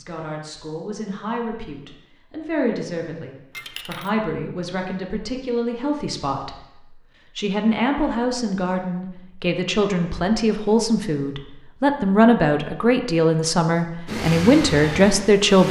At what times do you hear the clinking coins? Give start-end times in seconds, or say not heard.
3.5-4.1.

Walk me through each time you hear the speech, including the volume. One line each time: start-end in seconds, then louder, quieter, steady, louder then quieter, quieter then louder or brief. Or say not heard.
0.0-15.6 louder.